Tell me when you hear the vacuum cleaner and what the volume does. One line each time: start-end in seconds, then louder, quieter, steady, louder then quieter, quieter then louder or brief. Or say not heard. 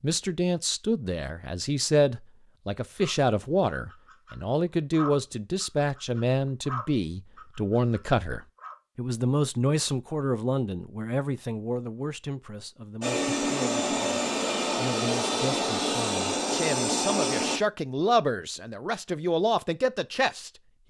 13.0-17.6 steady.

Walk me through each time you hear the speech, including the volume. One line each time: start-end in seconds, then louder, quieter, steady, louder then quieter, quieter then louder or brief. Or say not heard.
0.0-20.8 quieter then louder.